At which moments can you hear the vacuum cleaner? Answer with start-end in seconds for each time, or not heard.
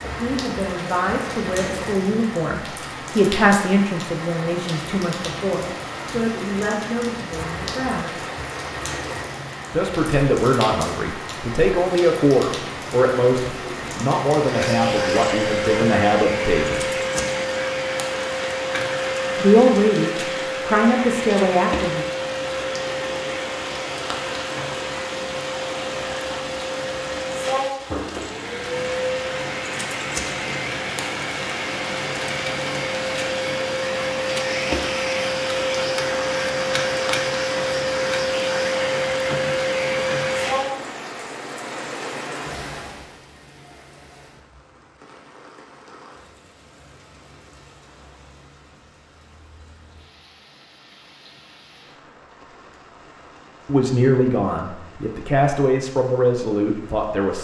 14.3-40.8.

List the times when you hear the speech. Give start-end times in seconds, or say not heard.
0.0-8.2, 9.7-16.9, 19.4-22.1, 53.6-57.3.